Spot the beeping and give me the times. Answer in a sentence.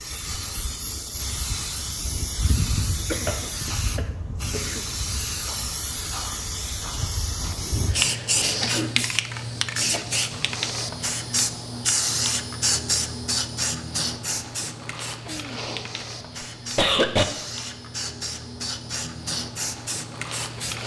The beeping can't be heard in this clip.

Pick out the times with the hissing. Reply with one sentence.
The hissing can be heard from 0.0 to 20.8 s.